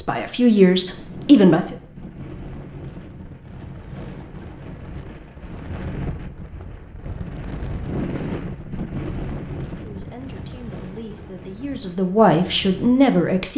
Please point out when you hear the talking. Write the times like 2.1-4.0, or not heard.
0.0-1.8, 9.8-13.5.